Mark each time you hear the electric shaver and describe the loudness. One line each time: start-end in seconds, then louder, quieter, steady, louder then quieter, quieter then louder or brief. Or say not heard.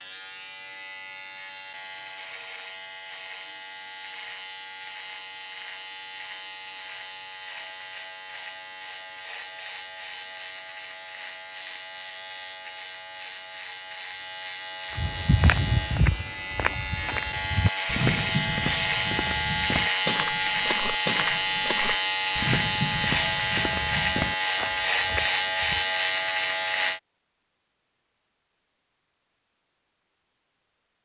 0.0-27.0 louder.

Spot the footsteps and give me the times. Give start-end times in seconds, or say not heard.
14.9-25.9.